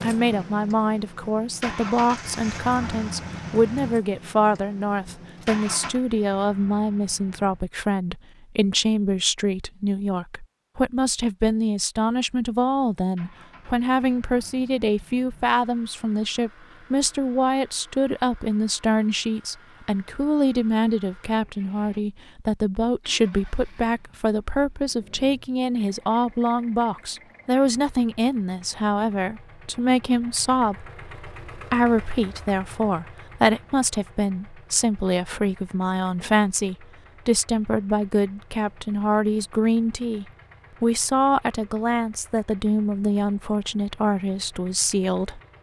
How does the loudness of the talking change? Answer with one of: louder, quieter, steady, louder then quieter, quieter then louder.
steady.